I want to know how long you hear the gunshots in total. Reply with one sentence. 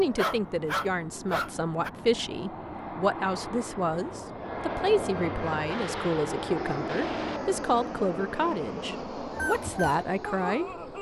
The gunshots can be heard for 2 seconds in total.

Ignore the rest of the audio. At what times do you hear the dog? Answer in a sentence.
The dog can be heard from 0.0 to 1.9 s and from 9.3 to 10.9 s.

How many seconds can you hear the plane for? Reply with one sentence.
The plane can be heard for 11 seconds in total.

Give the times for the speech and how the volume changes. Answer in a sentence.
You can hear the speech from 0.0 to 10.7 s, at a steady volume.